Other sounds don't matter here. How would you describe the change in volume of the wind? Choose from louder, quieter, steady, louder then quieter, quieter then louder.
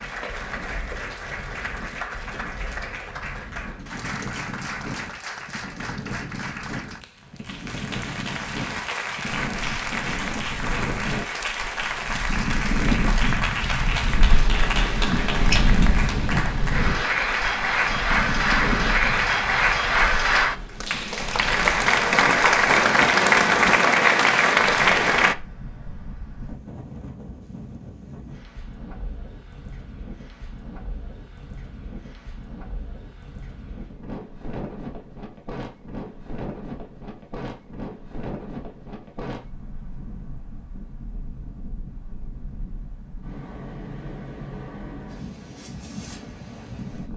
louder then quieter.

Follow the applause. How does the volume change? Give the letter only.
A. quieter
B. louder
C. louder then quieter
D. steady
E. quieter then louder
B.